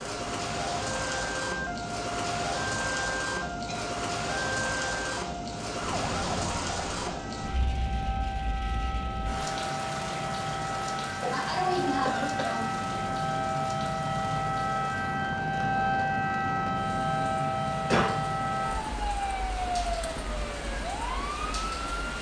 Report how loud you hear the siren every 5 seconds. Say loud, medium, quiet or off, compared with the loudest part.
medium, medium, loud, loud, medium.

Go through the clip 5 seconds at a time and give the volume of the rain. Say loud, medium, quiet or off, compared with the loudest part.
loud, loud, medium, medium, medium.